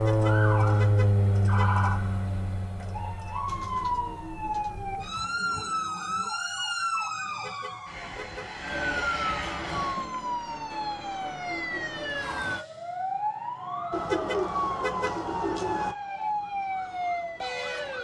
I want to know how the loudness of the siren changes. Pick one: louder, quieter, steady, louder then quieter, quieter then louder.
steady.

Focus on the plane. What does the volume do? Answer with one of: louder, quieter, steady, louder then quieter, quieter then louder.
quieter then louder.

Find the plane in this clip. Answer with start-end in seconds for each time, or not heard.
0.0-10.1.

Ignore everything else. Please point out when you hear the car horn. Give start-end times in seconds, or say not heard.
0.1-1.7, 7.4-9.1, 14.1-15.2.